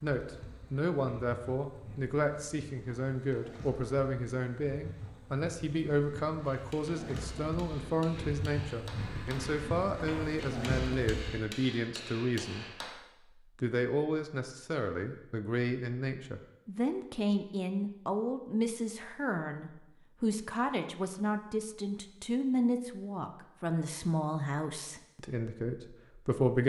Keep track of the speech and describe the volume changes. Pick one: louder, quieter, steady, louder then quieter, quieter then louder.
steady.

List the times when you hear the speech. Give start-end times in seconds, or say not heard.
0.0-12.7, 13.6-26.6.